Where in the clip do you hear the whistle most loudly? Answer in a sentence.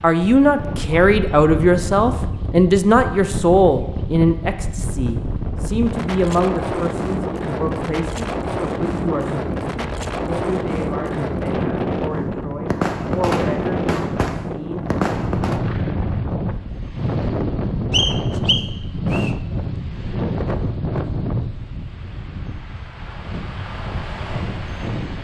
The volume of the whistle peaks at 18 seconds.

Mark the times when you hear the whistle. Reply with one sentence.
You can hear the whistle from 17.9 to 19.4 s.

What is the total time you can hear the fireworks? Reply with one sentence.
The fireworks can be heard for 3 seconds in total.